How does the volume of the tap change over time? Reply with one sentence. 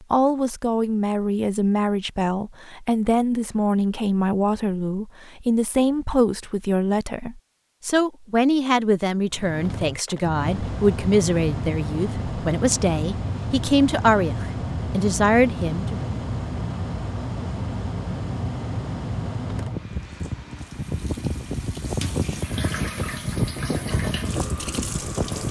The volume of the tap goes up.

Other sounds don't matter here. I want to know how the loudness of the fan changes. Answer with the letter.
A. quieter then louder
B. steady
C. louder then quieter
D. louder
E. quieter
B.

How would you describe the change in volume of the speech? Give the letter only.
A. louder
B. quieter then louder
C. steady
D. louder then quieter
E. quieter
C.